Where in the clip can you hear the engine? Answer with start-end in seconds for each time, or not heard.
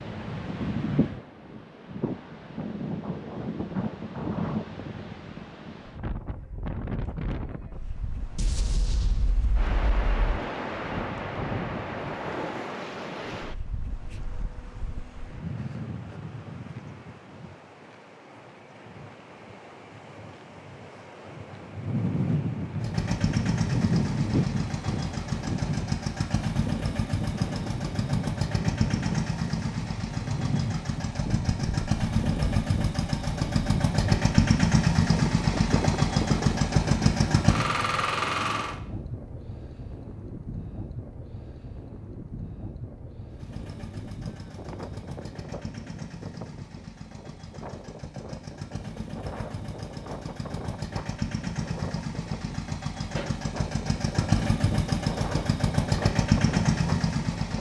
22.8-38.8, 43.3-57.5.